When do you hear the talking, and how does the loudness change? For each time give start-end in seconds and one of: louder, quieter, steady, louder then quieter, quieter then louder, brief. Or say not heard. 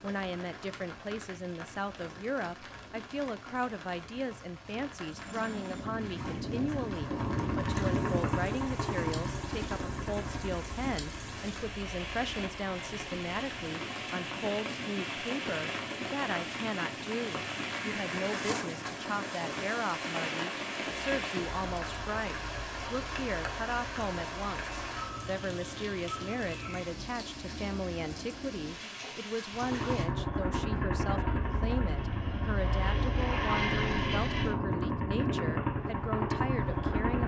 0.0-37.2 steady.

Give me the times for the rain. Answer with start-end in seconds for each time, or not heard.
0.0-30.1.